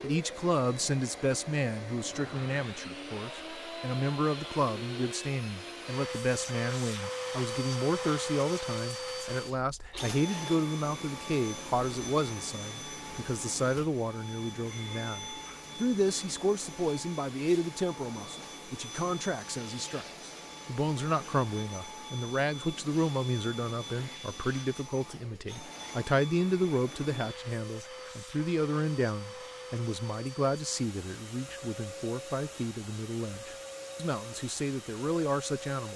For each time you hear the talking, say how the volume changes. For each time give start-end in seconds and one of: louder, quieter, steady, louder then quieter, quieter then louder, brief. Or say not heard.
0.0-35.9 steady.